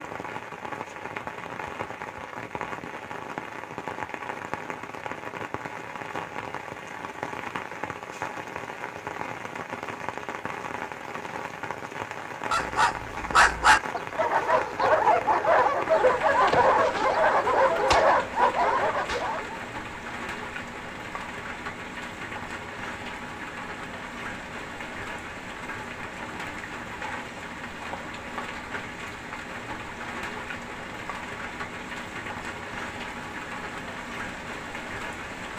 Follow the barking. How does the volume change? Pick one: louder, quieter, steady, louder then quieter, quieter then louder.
steady.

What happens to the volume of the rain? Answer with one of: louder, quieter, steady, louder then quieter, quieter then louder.
steady.